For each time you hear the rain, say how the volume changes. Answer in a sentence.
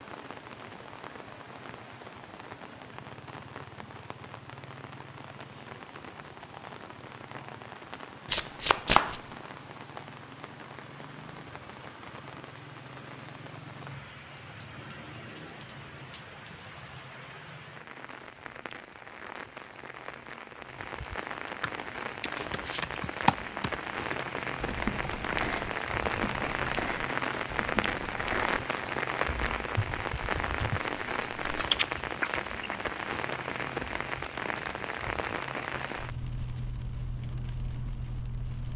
The rain can be heard from 0.0 to 38.7 s, getting louder.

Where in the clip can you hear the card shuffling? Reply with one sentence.
The card shuffling can be heard from 8.3 to 9.2 s, from 22.2 to 23.0 s and from 30.5 to 31.7 s.